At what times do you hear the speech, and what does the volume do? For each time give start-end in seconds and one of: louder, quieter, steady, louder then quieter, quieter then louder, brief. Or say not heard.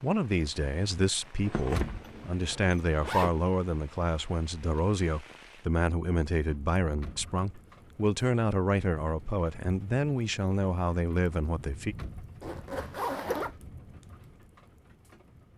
0.0-11.9 steady.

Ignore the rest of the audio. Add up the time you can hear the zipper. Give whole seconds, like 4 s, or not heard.
3 s.